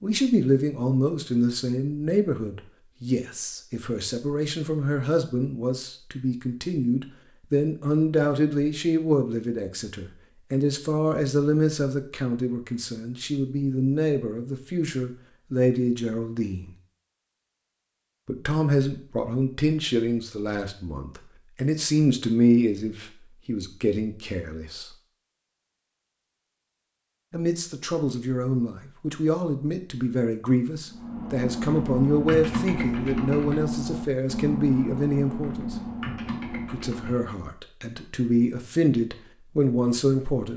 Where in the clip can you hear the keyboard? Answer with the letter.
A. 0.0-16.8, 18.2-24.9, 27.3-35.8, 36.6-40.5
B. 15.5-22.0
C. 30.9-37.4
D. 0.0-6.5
C.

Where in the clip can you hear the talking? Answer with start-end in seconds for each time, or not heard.
0.0-16.8, 18.2-24.9, 27.3-35.8, 36.6-40.5.